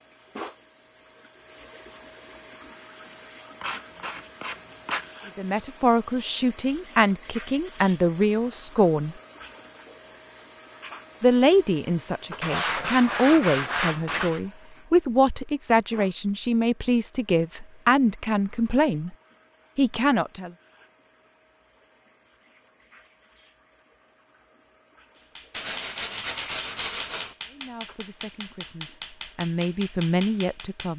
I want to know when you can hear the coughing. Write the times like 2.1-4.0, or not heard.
not heard.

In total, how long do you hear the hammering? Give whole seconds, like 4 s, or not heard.
6 s.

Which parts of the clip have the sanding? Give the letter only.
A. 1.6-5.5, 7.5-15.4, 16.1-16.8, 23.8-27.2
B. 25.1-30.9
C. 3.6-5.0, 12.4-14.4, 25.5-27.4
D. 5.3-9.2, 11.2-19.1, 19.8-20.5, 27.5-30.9
C.